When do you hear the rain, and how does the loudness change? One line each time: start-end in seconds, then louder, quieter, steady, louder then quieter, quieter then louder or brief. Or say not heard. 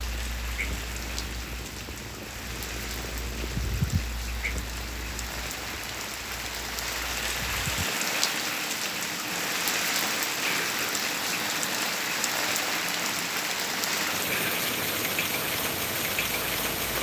0.0-16.9 louder.